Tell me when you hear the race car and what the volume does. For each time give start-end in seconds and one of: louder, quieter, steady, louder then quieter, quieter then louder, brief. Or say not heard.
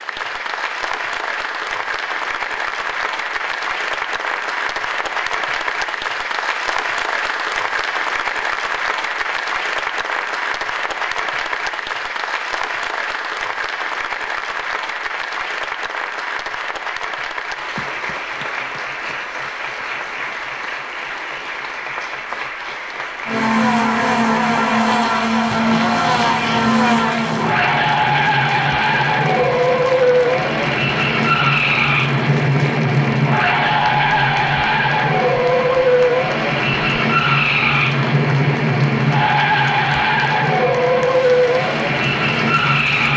23.2-43.1 steady.